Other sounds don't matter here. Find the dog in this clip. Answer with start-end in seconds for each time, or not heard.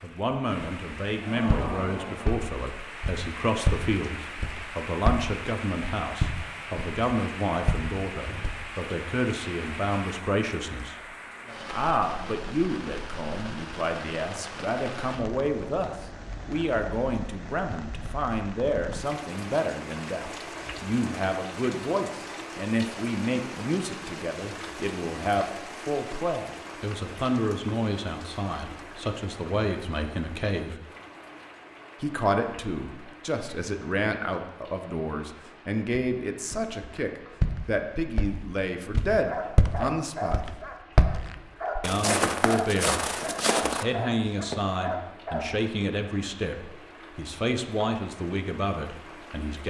39.2-45.5.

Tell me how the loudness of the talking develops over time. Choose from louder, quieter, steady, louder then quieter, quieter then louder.
steady.